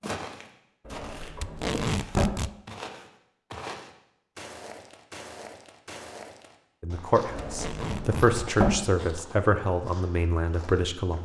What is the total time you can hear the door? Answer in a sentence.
You can hear the door for 3 seconds altogether.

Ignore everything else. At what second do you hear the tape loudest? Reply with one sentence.
The volume of the tape peaks at 2 seconds.